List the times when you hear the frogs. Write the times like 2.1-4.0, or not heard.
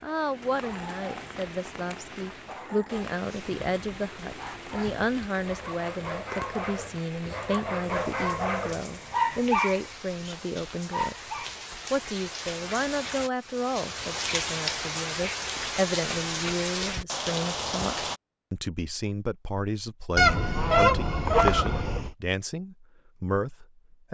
not heard.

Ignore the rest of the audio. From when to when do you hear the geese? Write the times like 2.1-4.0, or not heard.
20.1-22.1.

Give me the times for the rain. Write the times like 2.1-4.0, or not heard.
0.0-18.2.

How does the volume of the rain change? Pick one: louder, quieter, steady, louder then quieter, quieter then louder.
louder.